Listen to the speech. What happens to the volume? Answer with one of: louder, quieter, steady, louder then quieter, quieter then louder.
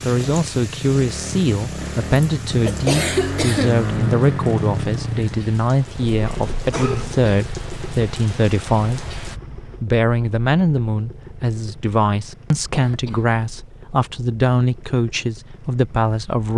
steady.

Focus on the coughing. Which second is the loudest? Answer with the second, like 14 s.
3 s.